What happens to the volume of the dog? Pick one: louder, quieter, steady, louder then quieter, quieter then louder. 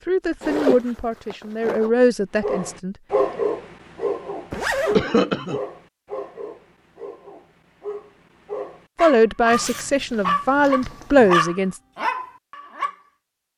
quieter then louder.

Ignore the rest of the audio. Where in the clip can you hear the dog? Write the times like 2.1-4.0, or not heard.
2.4-12.9.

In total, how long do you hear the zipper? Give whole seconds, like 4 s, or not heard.
4 s.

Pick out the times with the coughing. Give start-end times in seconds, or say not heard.
5.0-5.6.